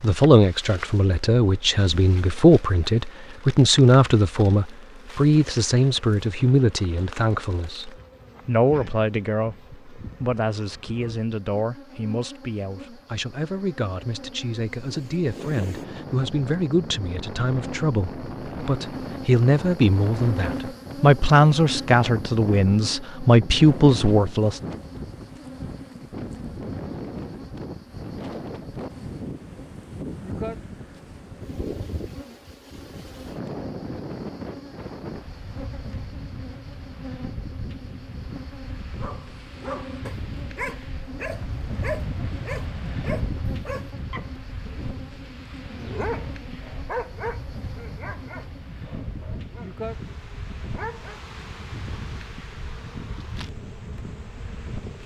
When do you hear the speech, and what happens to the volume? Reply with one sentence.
The speech can be heard from 0.0 to 24.6 s, getting quieter then louder.